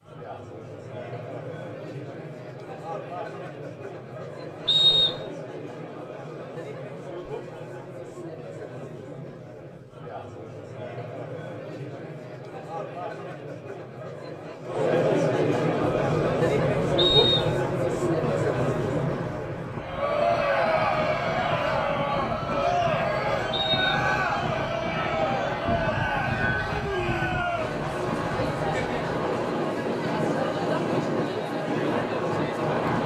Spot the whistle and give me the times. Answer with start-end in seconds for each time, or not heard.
4.7-5.2, 16.9-17.6, 23.5-23.9.